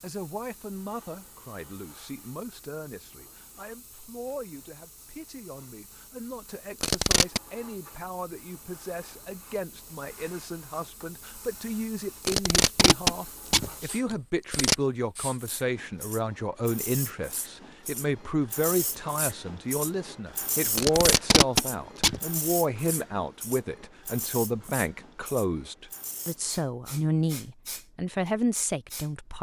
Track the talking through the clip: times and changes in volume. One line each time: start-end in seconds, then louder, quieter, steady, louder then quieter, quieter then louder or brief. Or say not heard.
0.0-29.3 louder.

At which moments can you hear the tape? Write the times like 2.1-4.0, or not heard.
6.8-7.4, 12.2-14.8, 20.8-22.2.